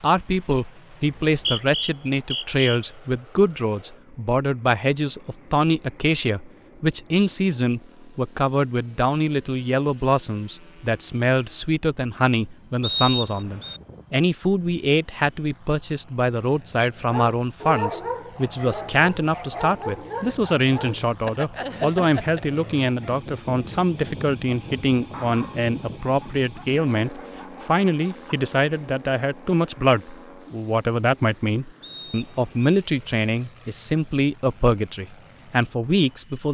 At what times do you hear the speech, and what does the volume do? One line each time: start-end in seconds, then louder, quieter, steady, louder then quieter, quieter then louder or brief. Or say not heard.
0.0-36.4 steady.